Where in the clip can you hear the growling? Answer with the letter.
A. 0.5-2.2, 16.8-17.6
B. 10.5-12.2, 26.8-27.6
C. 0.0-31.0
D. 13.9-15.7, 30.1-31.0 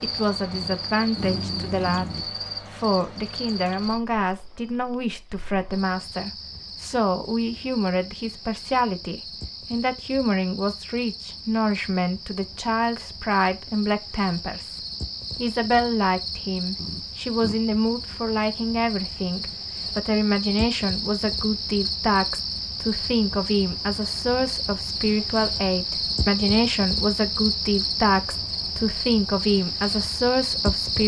A.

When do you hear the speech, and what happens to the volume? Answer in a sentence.
The speech can be heard from 0.0 to 31.0 s, at a steady volume.